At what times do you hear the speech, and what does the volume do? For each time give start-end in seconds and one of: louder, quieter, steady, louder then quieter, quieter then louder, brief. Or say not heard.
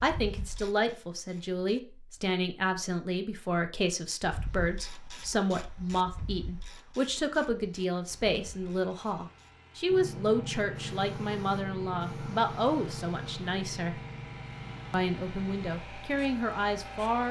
0.0-14.0 steady
14.9-17.2 brief.